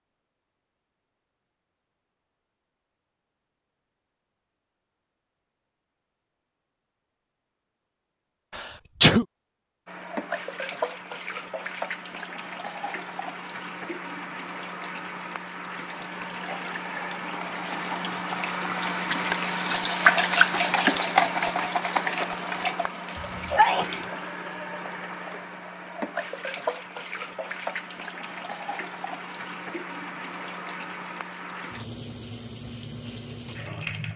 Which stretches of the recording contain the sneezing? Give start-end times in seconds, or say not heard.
8.6-9.2, 23.1-24.1.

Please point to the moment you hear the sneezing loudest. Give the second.
9 s.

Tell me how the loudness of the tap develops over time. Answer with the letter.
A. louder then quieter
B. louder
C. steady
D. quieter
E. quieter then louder
A.